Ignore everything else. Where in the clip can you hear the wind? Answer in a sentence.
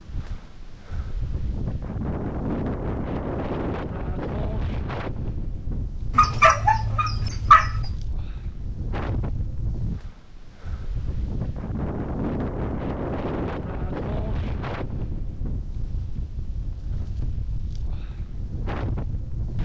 The wind can be heard from 0.0 to 19.5 s.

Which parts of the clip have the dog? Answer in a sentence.
You can hear the dog from 6.1 to 8.0 s.